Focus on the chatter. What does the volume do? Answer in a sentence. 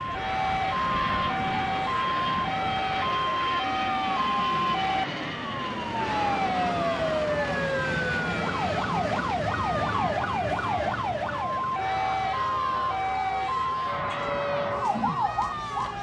The volume of the chatter stays about the same.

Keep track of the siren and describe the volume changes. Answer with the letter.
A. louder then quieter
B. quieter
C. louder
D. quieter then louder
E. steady
E.